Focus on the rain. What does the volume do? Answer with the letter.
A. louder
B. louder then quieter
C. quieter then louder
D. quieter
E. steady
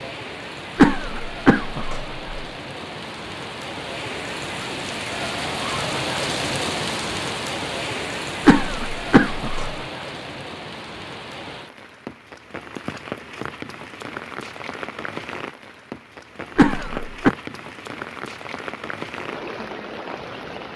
B.